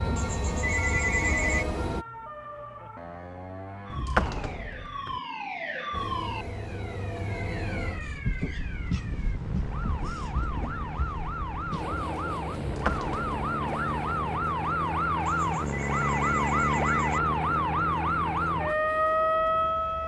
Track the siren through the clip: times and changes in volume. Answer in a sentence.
The siren can be heard from 0.0 to 20.0 s, getting louder.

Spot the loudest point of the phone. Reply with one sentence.
The volume of the phone peaks at 1 second.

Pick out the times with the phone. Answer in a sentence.
The phone can be heard from 0.1 to 1.6 s and from 15.2 to 17.2 s.